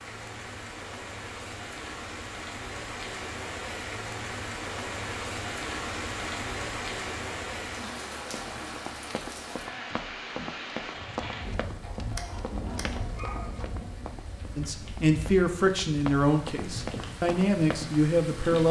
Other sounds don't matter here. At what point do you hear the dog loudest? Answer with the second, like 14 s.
13 s.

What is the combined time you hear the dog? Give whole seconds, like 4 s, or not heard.
2 s.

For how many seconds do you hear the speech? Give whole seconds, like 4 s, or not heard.
4 s.